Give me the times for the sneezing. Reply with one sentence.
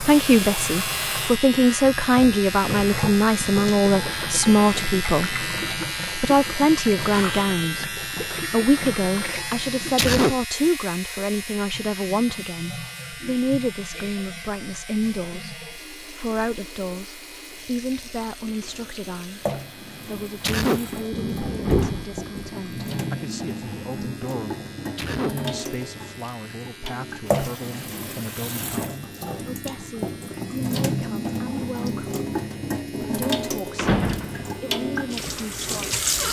You can hear the sneezing from 9.9 to 10.3 s, from 20.4 to 20.9 s and from 24.9 to 25.4 s.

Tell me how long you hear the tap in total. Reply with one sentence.
You can hear the tap for 36 seconds altogether.